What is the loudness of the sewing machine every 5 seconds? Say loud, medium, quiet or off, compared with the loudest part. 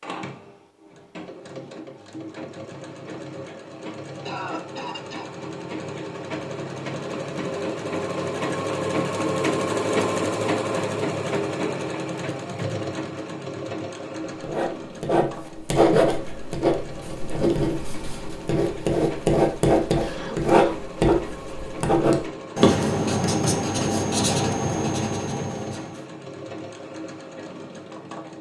medium, loud, loud, medium, medium, medium.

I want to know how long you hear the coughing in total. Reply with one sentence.
The coughing can be heard for 2 seconds in total.